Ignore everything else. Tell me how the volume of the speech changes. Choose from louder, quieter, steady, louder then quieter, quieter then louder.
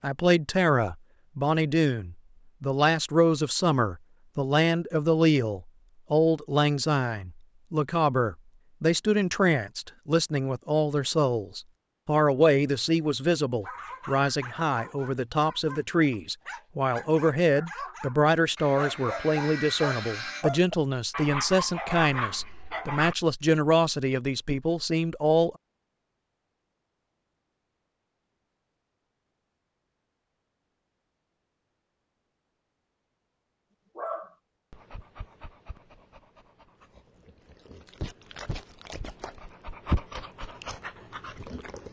steady.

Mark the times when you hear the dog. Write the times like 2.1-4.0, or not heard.
13.6-23.1, 34.0-41.8.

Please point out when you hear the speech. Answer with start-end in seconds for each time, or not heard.
0.0-25.5.